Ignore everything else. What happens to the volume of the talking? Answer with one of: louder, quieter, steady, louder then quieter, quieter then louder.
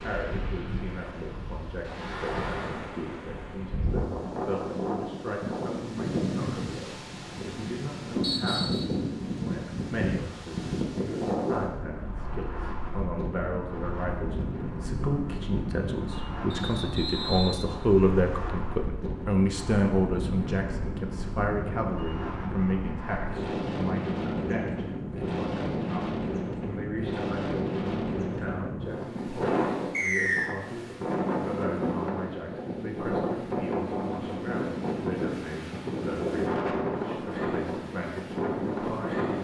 louder then quieter.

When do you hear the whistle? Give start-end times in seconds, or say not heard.
8.2-8.8, 16.5-18.5, 29.9-30.6.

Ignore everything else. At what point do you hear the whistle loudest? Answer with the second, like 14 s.
30 s.